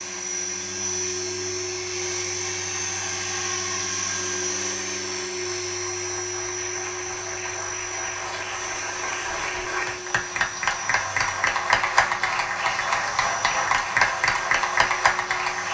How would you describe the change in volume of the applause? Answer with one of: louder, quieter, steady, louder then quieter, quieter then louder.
louder.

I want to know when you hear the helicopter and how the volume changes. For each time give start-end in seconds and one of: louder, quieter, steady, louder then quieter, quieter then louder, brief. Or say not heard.
0.0-15.7 quieter.